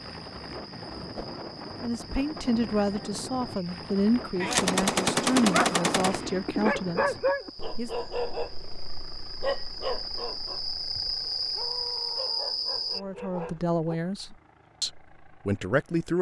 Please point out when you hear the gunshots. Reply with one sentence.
You can hear the gunshots from 4.4 to 6.2 s.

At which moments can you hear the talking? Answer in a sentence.
You can hear the talking from 1.8 to 8.1 s and from 12.9 to 16.1 s.